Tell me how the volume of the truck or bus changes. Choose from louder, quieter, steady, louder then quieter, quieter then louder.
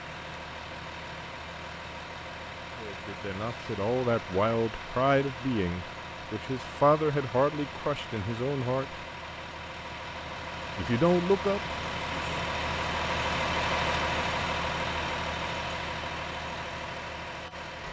louder.